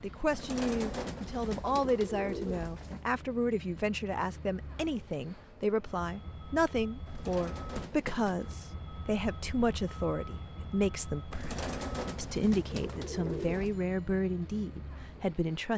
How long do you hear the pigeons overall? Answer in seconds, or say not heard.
7 s.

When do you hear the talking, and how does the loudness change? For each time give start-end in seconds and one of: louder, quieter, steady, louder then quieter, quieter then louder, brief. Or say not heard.
0.0-15.7 steady.